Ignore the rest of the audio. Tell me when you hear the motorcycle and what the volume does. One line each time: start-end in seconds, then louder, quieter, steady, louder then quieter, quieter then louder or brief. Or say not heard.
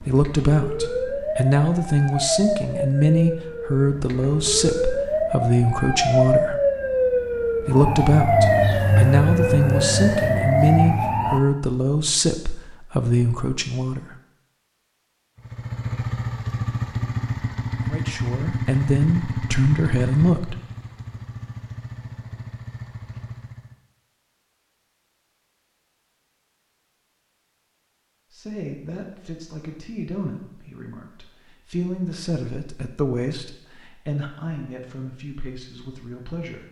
15.3-23.8 quieter.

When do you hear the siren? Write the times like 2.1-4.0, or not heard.
0.0-11.4.